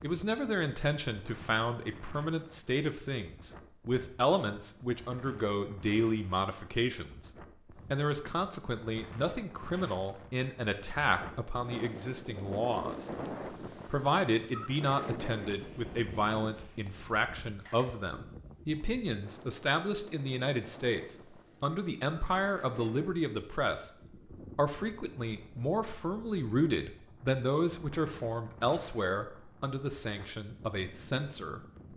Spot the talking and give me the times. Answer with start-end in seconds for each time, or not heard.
0.0-7.3, 7.9-13.1, 13.8-23.9, 24.6-31.6.